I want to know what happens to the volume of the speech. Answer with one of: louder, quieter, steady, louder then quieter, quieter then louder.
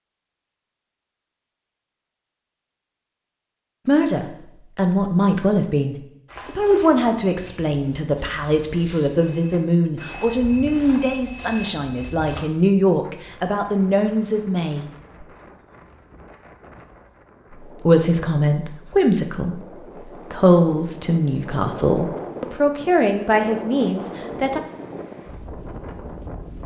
steady.